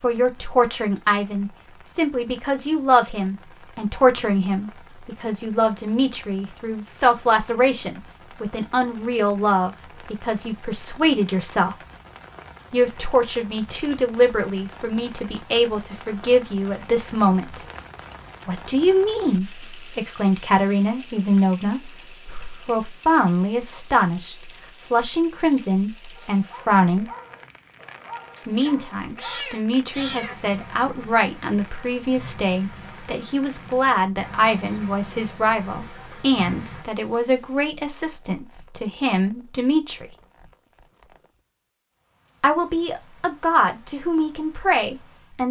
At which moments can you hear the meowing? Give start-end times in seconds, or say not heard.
28.6-30.4.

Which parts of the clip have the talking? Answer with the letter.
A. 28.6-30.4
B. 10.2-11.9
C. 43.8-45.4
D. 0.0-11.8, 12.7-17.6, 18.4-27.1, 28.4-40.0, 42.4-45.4
D.